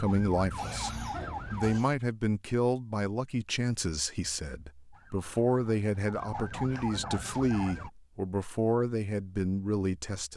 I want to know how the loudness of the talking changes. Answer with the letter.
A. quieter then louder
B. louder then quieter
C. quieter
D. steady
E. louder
D.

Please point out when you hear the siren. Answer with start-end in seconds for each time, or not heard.
0.0-1.8, 4.9-7.9.